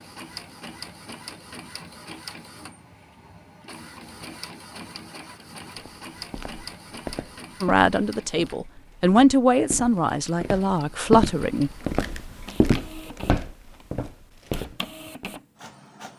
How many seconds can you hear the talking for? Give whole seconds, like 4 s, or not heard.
4 s.